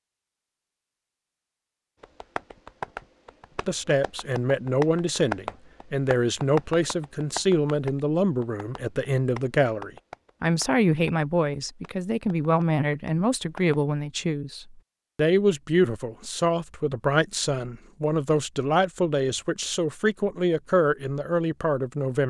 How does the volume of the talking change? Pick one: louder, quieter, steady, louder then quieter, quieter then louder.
steady.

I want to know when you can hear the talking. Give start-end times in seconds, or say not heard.
3.6-22.2.